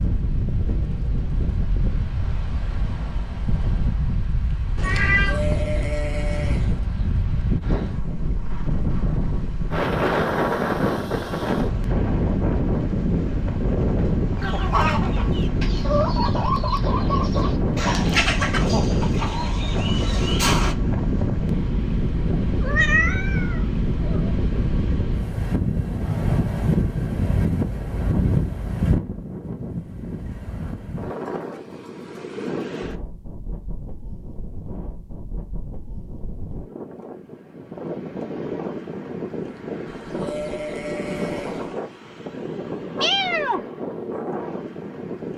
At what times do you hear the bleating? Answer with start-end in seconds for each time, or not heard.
5.2-6.8, 39.9-41.8.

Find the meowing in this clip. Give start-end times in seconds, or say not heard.
4.8-5.4, 22.4-24.4, 43.0-43.6.